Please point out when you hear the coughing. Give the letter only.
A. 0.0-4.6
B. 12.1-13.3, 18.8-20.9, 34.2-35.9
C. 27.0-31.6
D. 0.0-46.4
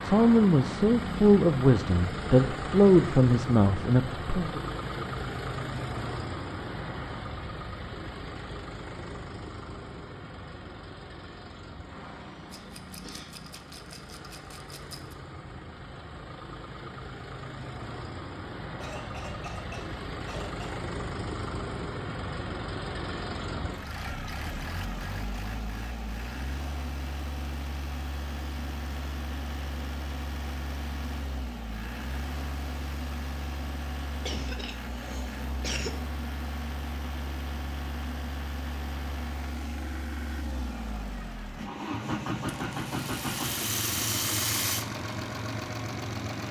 B.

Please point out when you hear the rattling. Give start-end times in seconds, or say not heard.
12.5-15.2, 42.6-44.9.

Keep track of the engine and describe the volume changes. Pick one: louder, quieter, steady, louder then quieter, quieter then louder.
quieter then louder.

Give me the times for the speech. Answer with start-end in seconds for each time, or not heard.
0.0-4.6.